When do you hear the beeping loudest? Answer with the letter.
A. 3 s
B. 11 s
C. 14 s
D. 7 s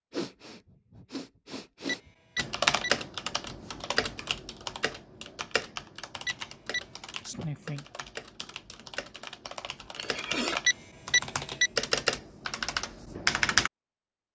B.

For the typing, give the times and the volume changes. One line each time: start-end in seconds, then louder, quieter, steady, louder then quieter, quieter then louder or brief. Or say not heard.
2.4-13.7 quieter then louder.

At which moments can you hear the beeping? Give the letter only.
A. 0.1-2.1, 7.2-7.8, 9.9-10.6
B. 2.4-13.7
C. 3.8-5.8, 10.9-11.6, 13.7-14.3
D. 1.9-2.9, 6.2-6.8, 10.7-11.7
D.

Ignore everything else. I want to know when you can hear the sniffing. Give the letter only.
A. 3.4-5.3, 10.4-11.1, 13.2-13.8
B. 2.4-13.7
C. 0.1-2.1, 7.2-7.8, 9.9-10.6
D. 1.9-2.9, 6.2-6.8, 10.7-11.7
C.